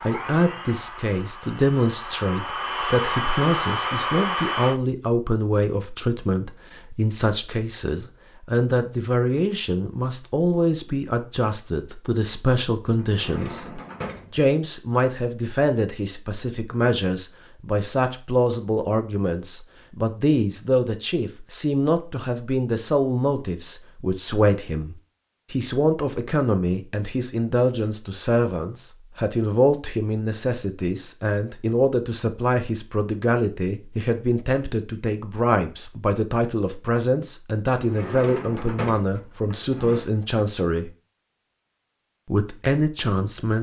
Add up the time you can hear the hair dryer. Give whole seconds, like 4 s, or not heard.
5 s.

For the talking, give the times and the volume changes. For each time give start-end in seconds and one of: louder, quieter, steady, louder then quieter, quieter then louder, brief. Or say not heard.
0.0-40.9 steady
42.2-43.5 brief.